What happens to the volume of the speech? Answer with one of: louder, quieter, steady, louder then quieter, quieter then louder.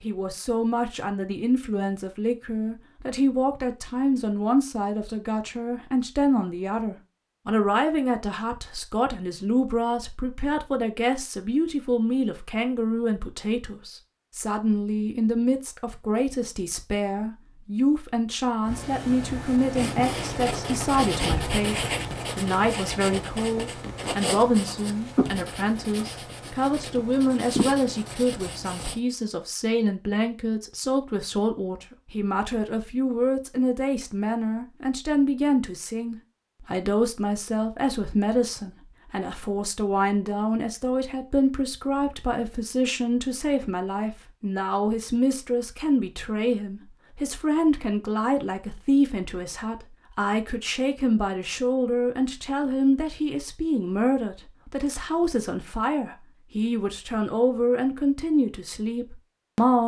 steady.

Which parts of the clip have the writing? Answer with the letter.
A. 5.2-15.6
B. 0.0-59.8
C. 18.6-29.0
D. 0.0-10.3
C.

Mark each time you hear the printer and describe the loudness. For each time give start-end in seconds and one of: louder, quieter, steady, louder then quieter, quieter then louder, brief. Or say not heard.
not heard.